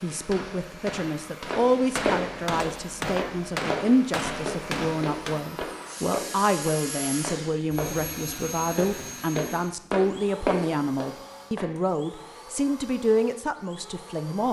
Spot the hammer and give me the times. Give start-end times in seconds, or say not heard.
0.1-5.5.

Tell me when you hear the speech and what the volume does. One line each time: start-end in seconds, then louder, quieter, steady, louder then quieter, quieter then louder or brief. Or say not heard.
0.0-14.4 steady.